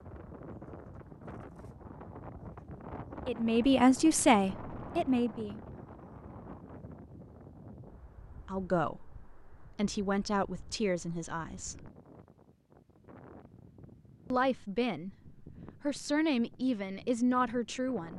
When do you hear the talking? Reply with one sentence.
The talking can be heard from 3.2 to 5.6 s, from 8.4 to 11.9 s and from 14.3 to 18.1 s.